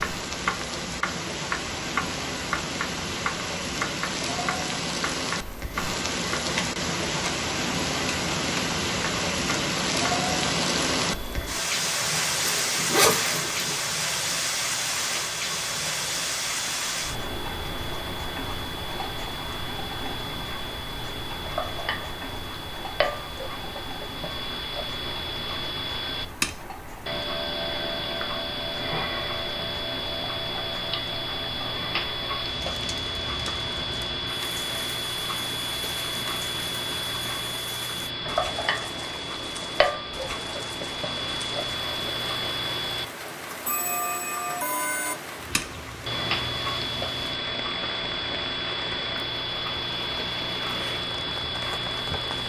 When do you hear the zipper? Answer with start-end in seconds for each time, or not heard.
12.4-13.8.